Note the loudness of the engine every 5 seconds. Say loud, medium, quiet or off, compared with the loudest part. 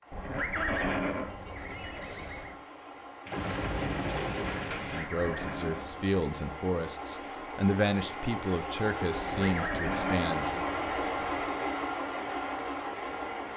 quiet, medium, loud.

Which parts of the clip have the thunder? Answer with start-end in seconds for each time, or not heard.
3.2-5.0.